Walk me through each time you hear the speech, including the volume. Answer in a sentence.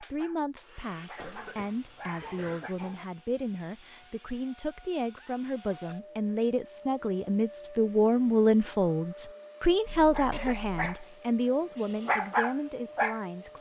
The speech can be heard from 0.0 to 13.5 s, getting louder then quieter.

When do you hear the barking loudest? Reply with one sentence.
The volume of the barking peaks at 12 seconds.